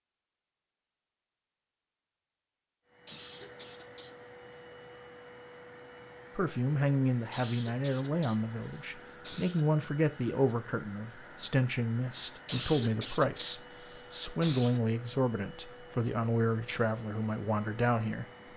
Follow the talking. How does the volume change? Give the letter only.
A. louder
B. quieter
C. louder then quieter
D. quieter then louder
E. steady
E.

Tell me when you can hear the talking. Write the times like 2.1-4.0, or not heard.
6.3-18.2.